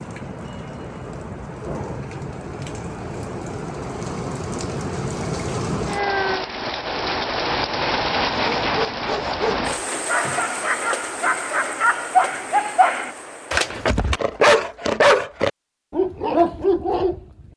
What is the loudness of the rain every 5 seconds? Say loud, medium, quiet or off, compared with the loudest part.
medium, loud, medium, off.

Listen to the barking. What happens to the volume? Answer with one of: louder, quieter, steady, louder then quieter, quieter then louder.
louder.